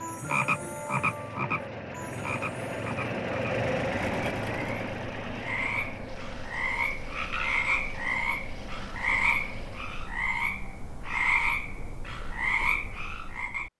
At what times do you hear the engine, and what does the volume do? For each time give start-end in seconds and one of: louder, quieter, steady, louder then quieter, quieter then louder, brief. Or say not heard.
0.0-10.1 louder then quieter.